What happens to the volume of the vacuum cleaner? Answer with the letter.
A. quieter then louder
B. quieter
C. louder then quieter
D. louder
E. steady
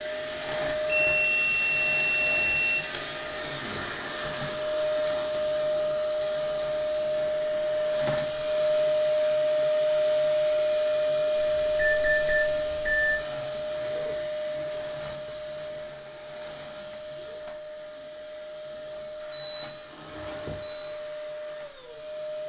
C.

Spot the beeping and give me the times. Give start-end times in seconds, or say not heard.
0.8-2.8, 11.3-13.2, 19.3-20.9.